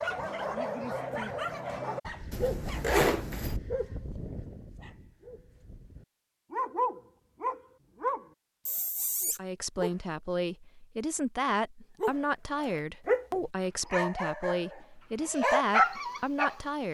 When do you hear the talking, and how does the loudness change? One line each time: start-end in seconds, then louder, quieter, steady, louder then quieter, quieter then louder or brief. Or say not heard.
9.2-16.8 steady.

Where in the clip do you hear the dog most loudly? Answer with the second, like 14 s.
16 s.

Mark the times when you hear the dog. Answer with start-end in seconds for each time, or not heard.
0.0-9.9, 12.0-16.6.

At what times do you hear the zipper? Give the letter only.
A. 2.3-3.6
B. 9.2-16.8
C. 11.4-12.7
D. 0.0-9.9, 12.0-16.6
A.